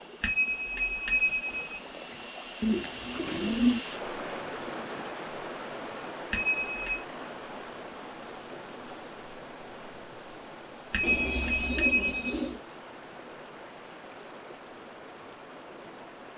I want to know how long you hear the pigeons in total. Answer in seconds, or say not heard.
3 s.